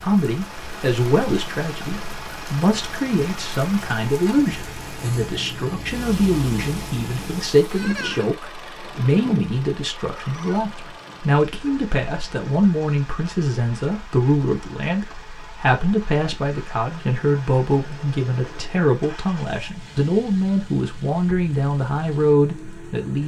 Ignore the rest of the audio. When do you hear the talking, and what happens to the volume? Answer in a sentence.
You can hear the talking from 0.0 to 23.2 s, at a steady volume.